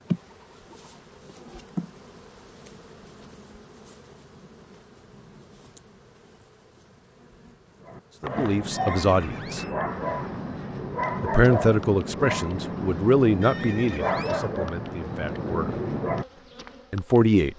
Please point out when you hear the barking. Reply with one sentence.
The barking can be heard from 7.8 to 16.7 s.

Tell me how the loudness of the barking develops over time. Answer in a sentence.
The loudness of the barking stays about the same.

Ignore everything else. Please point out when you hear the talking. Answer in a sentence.
The talking can be heard from 8.2 to 9.7 s, from 11.2 to 15.8 s and from 16.9 to 17.5 s.